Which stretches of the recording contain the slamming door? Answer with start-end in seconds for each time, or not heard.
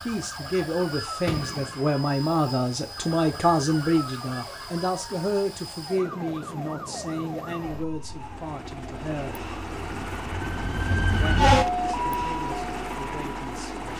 0.8-1.9.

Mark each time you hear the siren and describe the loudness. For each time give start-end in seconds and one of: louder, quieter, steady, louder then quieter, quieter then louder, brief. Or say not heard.
0.0-13.9 louder.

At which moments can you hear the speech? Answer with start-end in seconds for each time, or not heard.
0.0-9.4, 11.1-13.9.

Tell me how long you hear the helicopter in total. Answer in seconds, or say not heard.
14 s.